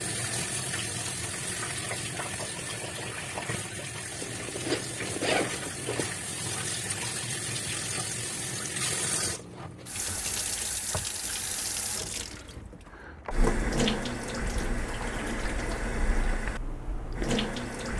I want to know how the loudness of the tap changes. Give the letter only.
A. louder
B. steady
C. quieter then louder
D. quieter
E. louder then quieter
B.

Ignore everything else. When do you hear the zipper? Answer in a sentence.
The zipper can be heard from 4.2 to 6.2 s.